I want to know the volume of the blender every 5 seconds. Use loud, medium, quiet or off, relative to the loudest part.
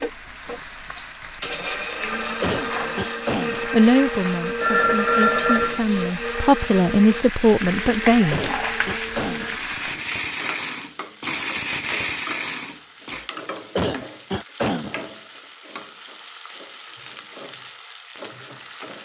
loud, loud, loud, off.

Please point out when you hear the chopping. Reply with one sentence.
The chopping can't be heard in this clip.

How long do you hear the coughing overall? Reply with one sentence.
The coughing can be heard for 4 seconds in total.